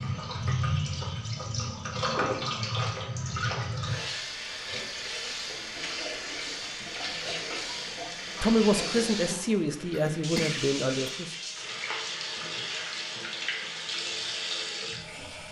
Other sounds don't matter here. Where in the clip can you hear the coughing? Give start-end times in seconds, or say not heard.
9.9-11.2.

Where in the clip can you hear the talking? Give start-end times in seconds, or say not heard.
8.4-11.3.